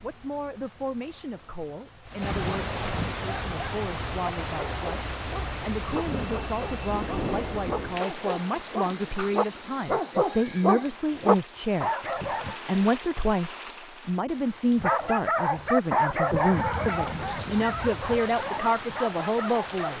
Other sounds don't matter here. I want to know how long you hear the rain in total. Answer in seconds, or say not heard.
20 s.